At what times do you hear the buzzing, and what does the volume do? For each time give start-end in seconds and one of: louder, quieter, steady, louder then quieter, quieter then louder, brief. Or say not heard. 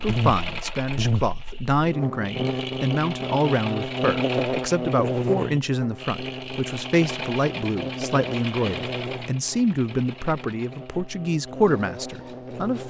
0.0-12.8 quieter.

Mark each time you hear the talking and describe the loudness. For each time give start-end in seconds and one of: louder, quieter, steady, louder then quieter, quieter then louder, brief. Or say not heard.
0.0-12.8 steady.